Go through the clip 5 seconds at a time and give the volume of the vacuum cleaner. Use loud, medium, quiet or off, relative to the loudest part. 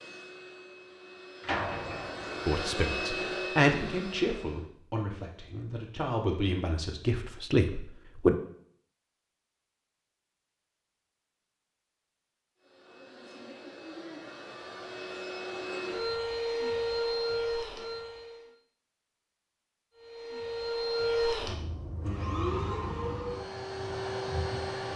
medium, off, quiet, loud, loud.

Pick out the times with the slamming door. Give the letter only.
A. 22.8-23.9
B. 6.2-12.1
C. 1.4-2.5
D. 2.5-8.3
C.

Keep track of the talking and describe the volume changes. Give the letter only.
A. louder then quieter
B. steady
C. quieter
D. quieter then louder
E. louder
D.